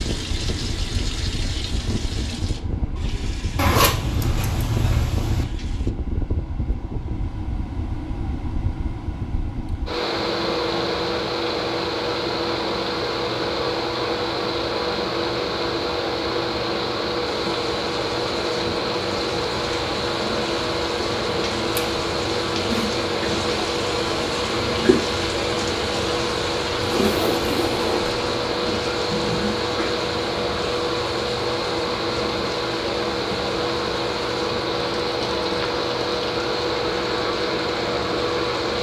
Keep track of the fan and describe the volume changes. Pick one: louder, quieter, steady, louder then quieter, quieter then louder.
louder.